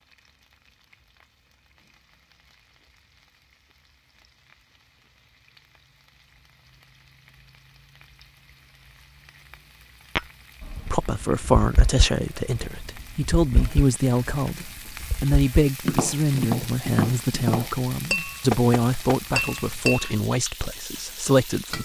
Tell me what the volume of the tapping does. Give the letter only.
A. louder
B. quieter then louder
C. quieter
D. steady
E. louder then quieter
B.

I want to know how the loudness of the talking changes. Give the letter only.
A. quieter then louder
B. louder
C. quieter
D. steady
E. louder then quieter
D.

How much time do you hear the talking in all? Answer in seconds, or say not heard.
11 s.